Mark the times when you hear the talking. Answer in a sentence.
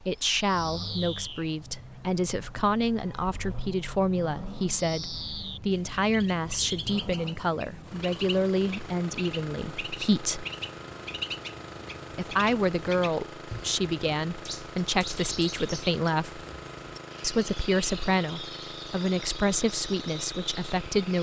You can hear the talking from 0.0 to 10.4 s, from 12.2 to 16.4 s and from 17.2 to 21.1 s.